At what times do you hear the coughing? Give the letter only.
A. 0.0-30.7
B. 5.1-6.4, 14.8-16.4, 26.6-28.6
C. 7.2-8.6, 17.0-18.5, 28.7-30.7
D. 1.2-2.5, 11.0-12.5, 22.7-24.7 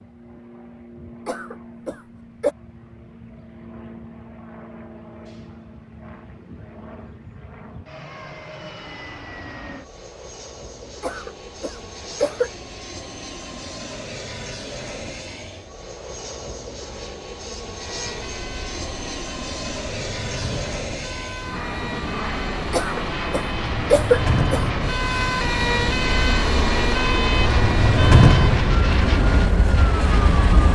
D.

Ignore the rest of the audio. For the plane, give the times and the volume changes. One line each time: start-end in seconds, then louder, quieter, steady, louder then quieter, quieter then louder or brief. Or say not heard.
0.0-30.7 louder.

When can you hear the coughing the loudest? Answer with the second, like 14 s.
24 s.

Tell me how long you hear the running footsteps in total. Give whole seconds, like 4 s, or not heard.
not heard.